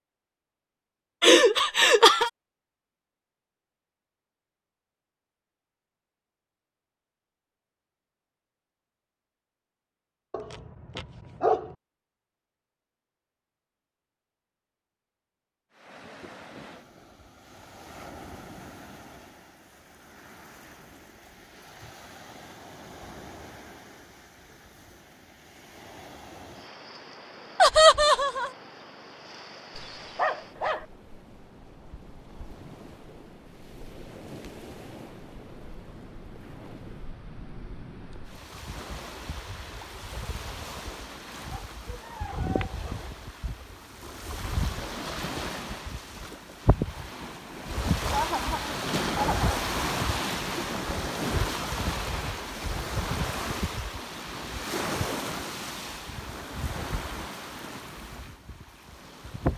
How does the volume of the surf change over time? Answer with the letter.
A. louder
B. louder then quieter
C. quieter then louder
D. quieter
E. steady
A.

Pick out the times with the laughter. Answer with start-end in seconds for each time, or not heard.
1.2-2.3, 27.6-28.5, 48.1-49.7.